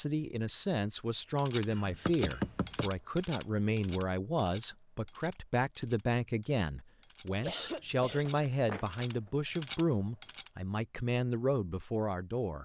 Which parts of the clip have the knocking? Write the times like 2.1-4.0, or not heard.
2.0-2.9, 8.2-8.9.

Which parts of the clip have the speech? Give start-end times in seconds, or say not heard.
0.0-12.6.